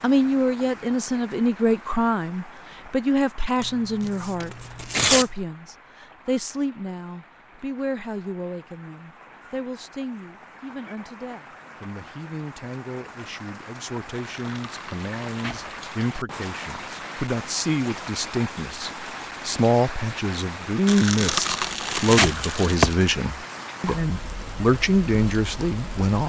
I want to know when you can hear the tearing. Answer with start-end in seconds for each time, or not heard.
3.6-5.2, 14.2-15.7, 20.9-22.9.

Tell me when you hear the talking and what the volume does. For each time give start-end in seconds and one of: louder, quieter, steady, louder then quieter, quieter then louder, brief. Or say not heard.
0.0-26.2 quieter then louder.